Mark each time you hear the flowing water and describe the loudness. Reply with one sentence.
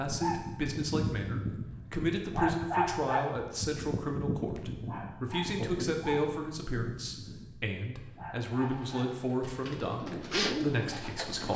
You can't hear the flowing water here.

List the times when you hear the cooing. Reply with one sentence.
You can hear the cooing from 8.6 to 11.5 s.